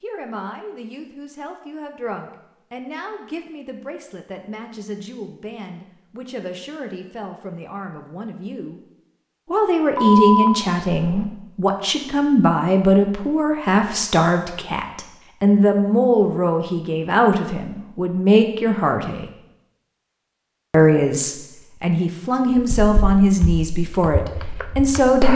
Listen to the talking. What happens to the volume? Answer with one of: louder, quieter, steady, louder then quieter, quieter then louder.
louder.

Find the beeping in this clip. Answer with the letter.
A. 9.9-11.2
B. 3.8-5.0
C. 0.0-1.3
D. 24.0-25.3
A.